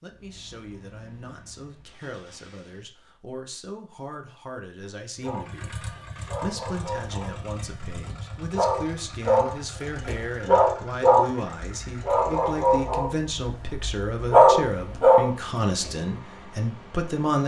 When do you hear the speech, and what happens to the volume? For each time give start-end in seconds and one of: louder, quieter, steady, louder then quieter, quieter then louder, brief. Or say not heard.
0.0-17.4 louder.